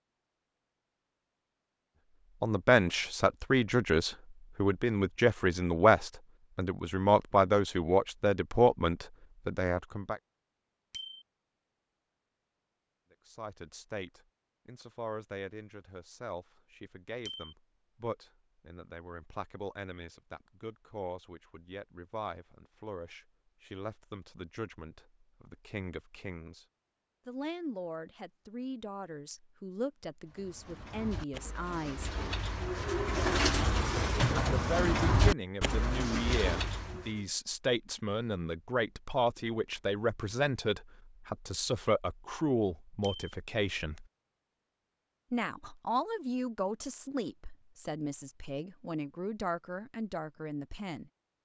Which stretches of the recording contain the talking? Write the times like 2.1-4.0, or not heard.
2.4-10.2, 13.1-26.6, 27.2-32.1, 34.3-44.0, 45.3-51.1.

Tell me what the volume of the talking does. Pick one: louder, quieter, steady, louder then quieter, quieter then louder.
quieter then louder.